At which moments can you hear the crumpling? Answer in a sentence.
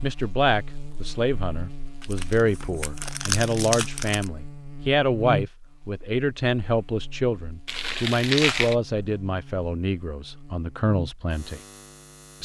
The crumpling can be heard from 2.0 to 4.3 s and from 7.7 to 8.8 s.